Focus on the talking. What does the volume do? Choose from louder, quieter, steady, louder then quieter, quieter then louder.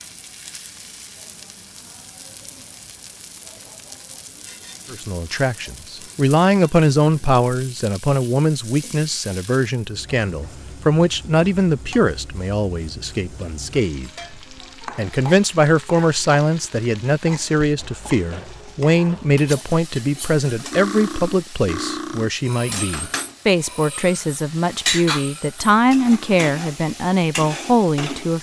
steady.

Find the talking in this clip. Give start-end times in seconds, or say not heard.
4.9-14.1, 14.9-28.3.